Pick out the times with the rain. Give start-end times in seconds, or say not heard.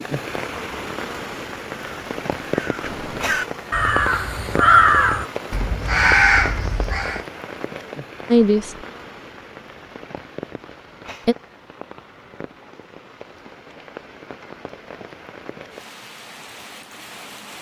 0.0-17.5.